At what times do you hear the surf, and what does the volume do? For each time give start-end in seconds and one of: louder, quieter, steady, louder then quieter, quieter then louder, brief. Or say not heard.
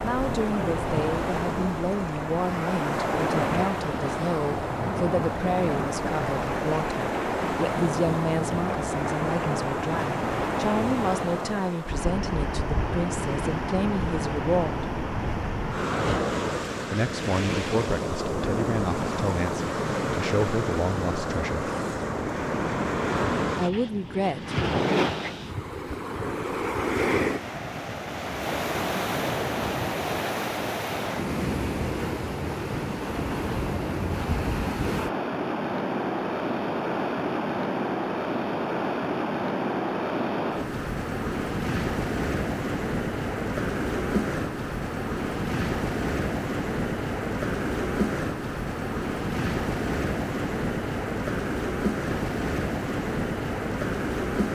0.0-54.4 steady.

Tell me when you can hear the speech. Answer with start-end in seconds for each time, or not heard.
0.0-14.8, 16.9-21.7, 23.6-24.6.